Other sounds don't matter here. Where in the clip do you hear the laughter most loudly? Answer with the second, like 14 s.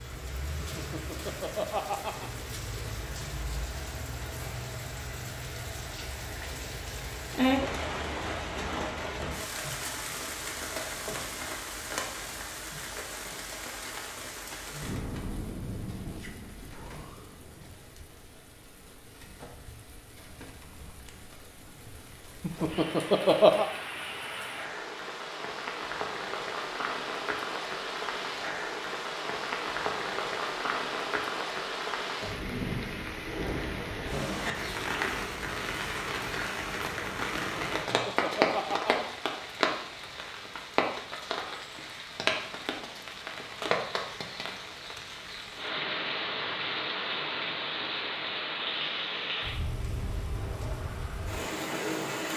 23 s.